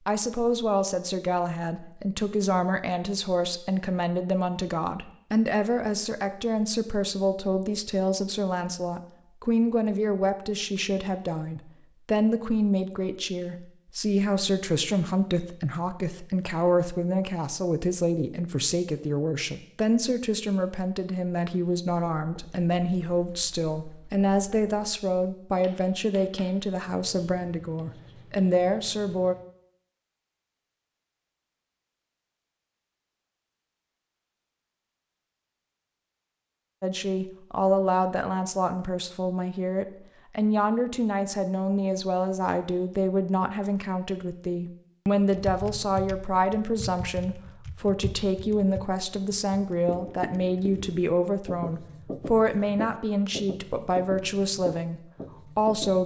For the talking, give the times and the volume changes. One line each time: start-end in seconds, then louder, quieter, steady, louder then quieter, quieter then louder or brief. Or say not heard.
0.1-29.4 steady
36.8-56.0 steady.